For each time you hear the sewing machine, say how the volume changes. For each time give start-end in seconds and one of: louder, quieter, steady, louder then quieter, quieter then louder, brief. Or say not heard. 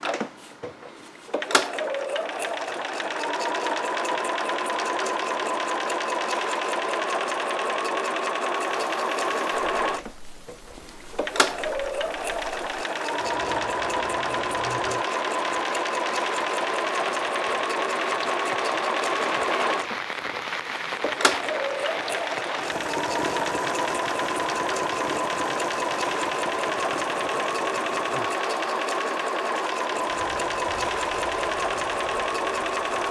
0.0-33.0 steady.